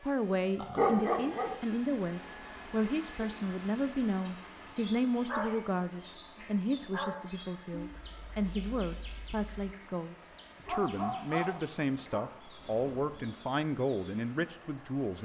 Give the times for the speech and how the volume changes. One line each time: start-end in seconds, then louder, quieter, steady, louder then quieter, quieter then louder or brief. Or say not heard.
0.0-15.2 steady.